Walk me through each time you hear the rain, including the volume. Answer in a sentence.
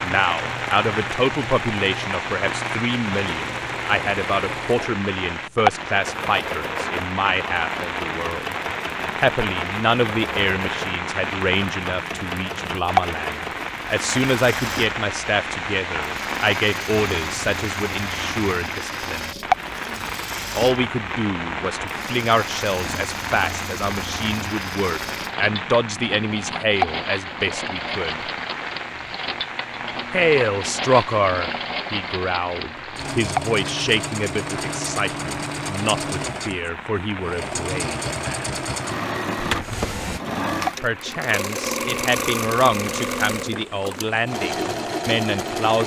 You can hear the rain from 0.0 to 45.7 s, getting quieter.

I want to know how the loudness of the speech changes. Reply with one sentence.
The volume of the speech stays about the same.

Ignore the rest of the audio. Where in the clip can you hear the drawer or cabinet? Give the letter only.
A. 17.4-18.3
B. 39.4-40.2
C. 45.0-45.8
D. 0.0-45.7
B.